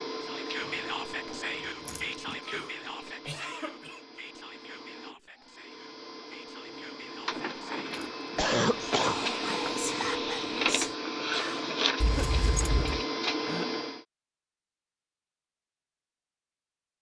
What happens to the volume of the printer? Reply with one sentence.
The volume of the printer goes down, then up.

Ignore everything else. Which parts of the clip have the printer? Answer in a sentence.
The printer can be heard from 0.0 to 14.1 s.